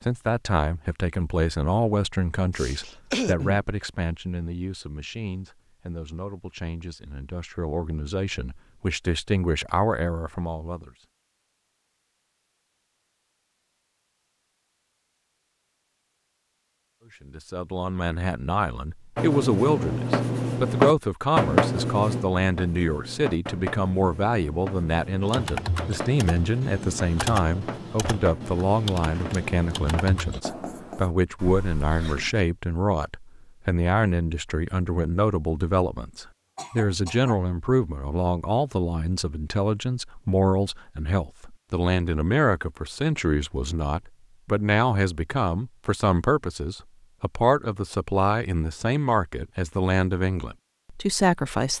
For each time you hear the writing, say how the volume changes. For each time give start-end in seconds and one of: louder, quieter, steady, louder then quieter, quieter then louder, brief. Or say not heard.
19.1-31.1 quieter.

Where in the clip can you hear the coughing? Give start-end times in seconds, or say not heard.
2.5-3.6, 31.4-32.5, 36.5-37.4.